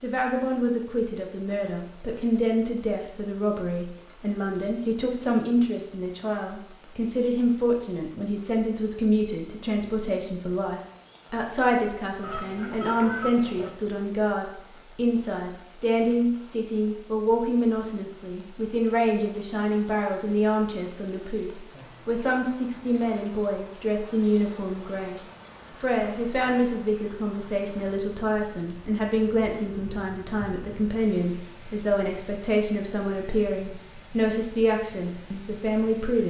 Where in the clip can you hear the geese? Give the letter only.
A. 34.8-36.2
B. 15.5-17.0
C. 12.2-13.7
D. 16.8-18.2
C.